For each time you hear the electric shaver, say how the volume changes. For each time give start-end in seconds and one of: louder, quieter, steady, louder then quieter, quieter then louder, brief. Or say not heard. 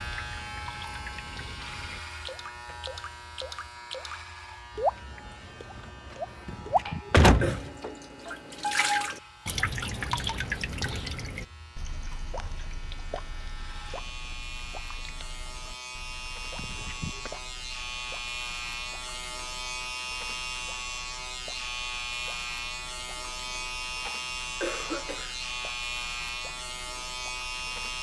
0.0-27.9 quieter then louder.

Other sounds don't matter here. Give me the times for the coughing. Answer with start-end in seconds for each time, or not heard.
6.3-7.6, 23.5-25.4.